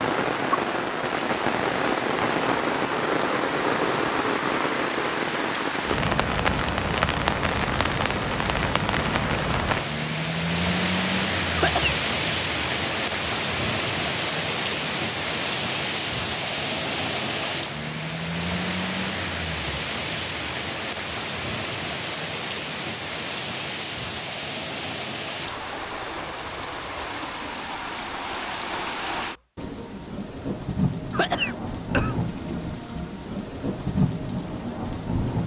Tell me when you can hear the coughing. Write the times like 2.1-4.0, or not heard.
11.6-12.0, 31.1-32.2.